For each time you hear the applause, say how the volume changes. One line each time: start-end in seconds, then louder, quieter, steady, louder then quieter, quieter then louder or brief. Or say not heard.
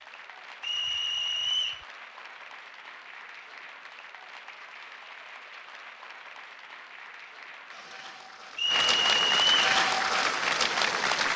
0.0-11.3 louder.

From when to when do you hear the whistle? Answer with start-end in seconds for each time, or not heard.
0.6-1.9, 8.6-9.8.